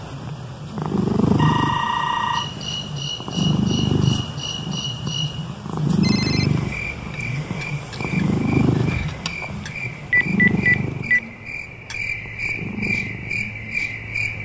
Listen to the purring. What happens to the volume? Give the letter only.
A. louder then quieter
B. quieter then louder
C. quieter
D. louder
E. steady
C.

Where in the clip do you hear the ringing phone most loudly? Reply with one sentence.
The loudest moment of the ringing phone is at 11 seconds.